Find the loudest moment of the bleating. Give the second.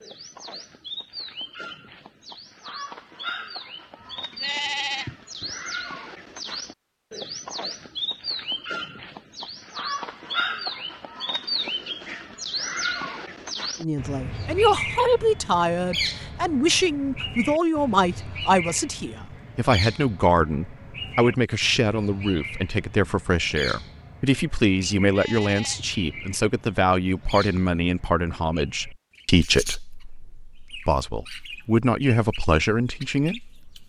5 s.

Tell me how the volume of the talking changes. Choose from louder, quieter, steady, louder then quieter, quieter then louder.
steady.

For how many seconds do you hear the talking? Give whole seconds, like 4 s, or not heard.
20 s.